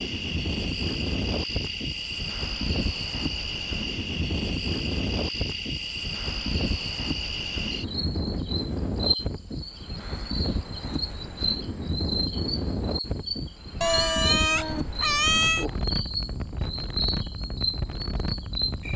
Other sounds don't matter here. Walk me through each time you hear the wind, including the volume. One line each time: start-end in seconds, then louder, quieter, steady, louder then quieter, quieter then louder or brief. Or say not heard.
0.0-18.9 steady.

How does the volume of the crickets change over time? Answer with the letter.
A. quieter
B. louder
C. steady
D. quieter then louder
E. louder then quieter
C.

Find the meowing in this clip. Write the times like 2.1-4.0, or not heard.
13.8-15.7.